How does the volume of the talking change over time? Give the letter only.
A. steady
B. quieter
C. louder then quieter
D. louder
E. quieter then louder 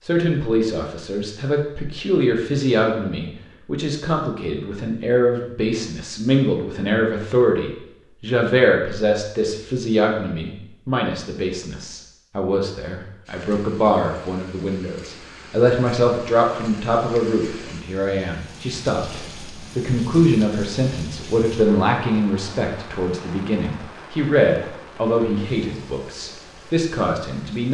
A.